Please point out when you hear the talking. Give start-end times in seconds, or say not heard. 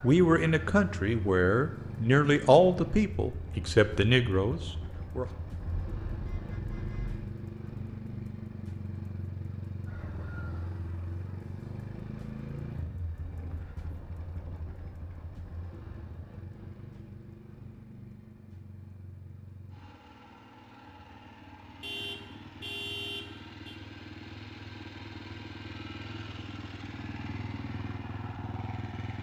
0.0-5.3.